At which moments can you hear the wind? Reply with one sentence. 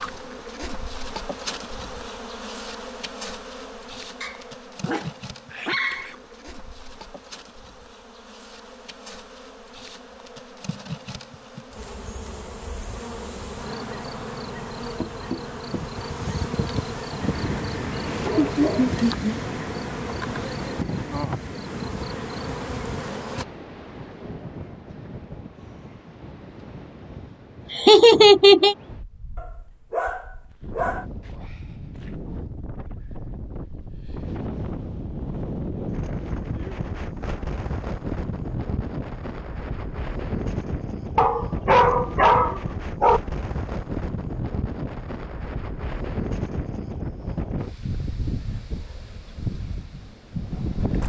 You can hear the wind from 15.8 to 51.0 s.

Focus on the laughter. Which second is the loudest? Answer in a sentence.
The volume of the laughter peaks at 28 seconds.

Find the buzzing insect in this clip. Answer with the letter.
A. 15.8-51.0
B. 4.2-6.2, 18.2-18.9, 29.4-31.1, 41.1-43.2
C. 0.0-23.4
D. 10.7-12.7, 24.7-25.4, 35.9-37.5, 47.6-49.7
C.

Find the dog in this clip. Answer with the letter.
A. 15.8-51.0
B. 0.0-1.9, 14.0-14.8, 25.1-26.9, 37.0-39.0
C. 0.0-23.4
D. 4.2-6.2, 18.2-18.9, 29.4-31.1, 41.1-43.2
D.